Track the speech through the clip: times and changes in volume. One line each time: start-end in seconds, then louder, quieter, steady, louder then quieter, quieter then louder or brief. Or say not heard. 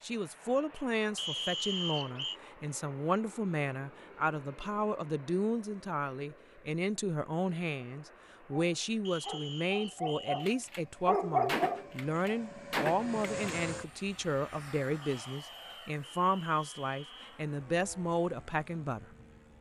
0.0-19.1 steady.